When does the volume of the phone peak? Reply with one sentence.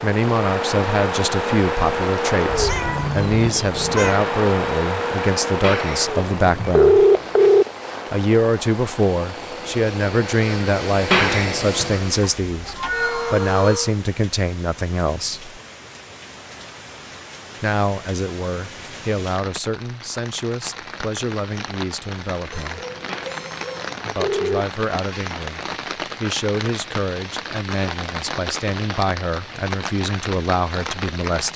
The loudest moment of the phone is at 7 seconds.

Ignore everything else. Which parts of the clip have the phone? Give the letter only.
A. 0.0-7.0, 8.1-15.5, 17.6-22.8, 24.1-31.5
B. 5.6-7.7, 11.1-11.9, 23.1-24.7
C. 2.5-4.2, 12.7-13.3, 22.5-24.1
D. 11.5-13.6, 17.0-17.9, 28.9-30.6
B.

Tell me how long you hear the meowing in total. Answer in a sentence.
You can hear the meowing for 4 seconds altogether.